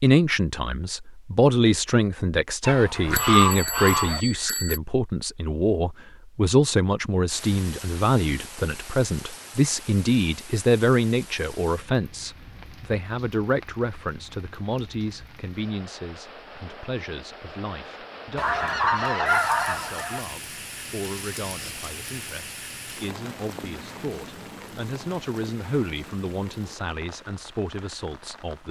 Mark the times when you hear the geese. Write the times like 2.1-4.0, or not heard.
2.6-4.2, 18.4-20.2.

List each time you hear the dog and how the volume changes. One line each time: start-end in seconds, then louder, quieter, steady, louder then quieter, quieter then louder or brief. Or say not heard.
not heard.